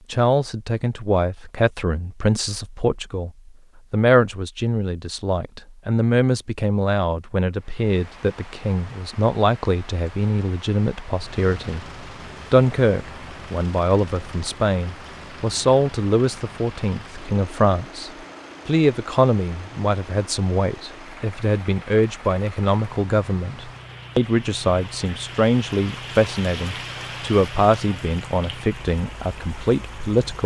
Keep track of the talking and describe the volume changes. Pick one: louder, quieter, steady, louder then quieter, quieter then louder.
steady.